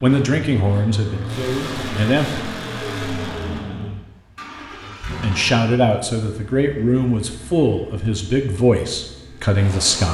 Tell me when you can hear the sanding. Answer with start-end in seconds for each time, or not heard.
not heard.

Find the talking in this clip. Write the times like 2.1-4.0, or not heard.
0.0-2.4, 5.2-10.0.